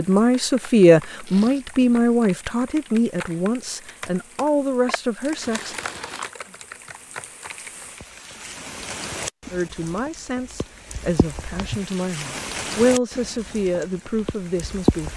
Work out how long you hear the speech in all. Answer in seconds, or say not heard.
11 s.